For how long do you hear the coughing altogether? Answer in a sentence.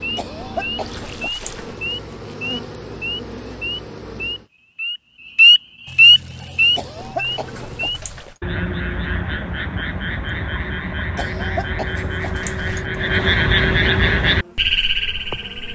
The coughing can be heard for 5 seconds in total.